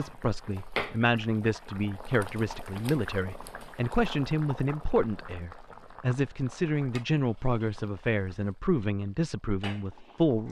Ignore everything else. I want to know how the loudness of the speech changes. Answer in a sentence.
The loudness of the speech stays about the same.